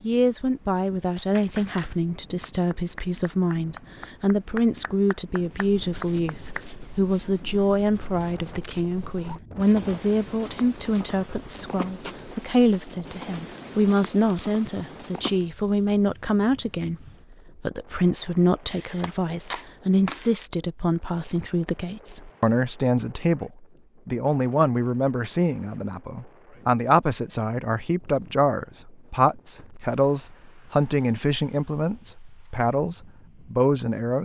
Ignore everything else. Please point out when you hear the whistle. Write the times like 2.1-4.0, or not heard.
not heard.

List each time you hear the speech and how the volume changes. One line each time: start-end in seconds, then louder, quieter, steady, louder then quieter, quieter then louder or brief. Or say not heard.
0.0-34.1 steady.